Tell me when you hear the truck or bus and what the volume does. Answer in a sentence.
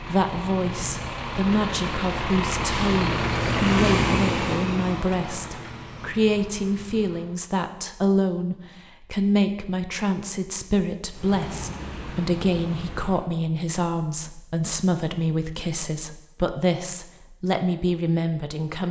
You can hear the truck or bus from 0.0 to 7.4 s, getting louder then quieter; and briefly from 11.2 to 13.2 s.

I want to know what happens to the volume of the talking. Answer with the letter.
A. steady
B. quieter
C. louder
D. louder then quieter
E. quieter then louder
A.